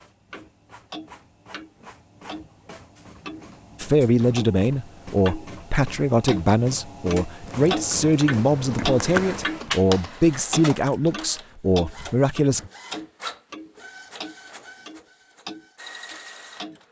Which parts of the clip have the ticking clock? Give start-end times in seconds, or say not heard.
0.3-5.5, 6.2-9.9, 10.5-16.8.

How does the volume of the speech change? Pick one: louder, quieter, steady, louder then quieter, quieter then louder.
steady.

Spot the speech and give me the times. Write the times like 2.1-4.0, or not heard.
3.8-12.7.